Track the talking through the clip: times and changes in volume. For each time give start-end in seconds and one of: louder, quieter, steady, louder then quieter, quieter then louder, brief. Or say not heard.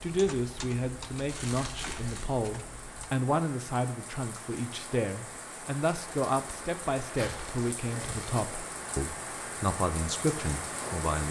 0.0-11.2 steady.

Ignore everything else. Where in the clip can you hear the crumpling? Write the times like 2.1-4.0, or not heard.
1.2-2.2, 7.0-8.3.